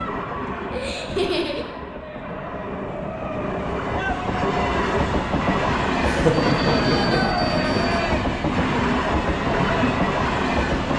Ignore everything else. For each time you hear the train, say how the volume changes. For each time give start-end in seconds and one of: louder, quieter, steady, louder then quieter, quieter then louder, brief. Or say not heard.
0.0-10.9 louder.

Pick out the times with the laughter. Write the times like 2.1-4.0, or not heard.
0.7-1.6, 6.0-7.4.